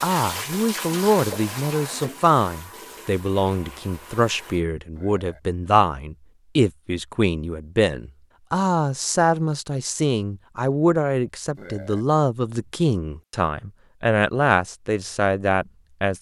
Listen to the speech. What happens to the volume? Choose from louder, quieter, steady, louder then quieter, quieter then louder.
steady.